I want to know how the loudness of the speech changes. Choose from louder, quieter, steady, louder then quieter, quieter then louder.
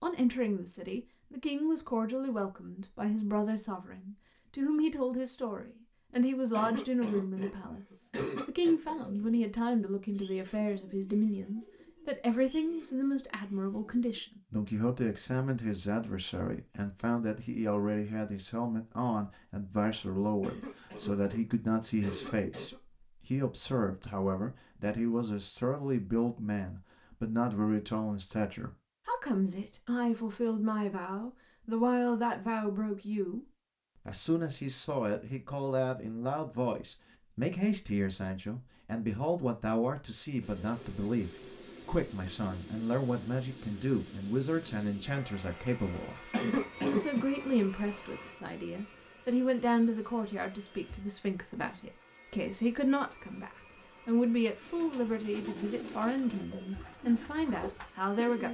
steady.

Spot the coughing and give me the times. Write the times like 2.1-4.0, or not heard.
6.5-8.8, 20.4-22.8, 46.3-47.2.